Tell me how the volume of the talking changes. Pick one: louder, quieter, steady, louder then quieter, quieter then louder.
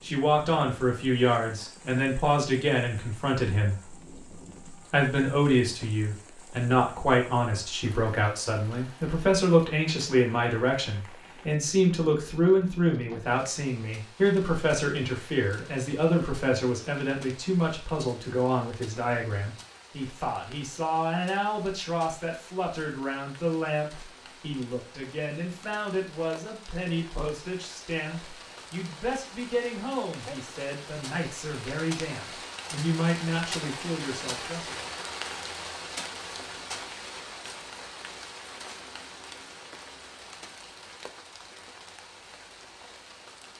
quieter.